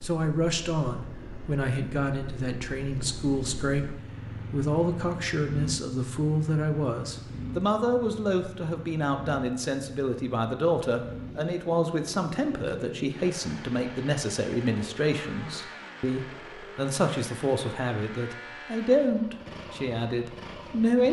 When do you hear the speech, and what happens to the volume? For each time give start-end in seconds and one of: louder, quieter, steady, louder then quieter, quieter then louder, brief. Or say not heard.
0.0-21.0 steady.